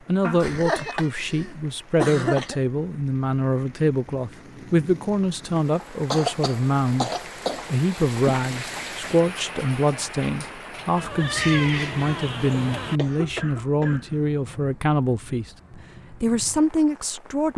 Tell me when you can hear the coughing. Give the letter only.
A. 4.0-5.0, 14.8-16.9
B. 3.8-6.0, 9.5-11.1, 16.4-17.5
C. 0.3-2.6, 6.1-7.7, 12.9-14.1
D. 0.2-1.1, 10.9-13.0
C.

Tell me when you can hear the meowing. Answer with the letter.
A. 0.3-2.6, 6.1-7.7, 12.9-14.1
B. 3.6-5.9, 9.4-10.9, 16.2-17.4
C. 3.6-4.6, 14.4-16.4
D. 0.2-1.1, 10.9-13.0
D.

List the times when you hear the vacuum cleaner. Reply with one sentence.
The vacuum cleaner can't be heard in this clip.